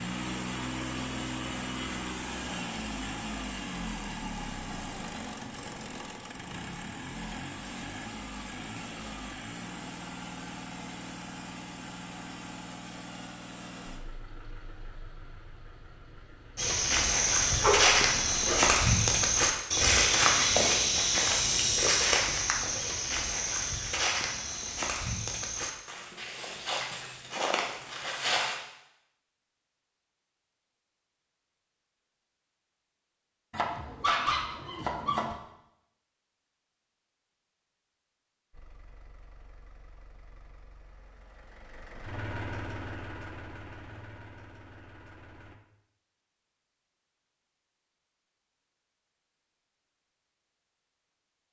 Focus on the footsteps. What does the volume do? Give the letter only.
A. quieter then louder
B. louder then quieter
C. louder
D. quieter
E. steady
D.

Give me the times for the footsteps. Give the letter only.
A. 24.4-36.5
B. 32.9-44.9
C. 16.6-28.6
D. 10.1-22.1
C.